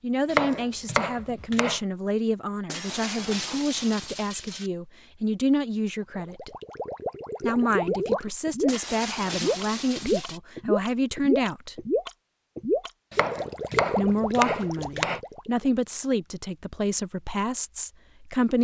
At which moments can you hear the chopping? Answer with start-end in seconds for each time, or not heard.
0.3-1.8, 13.1-15.2.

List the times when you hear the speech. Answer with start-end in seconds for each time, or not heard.
0.0-6.5, 7.4-11.8, 13.9-18.5.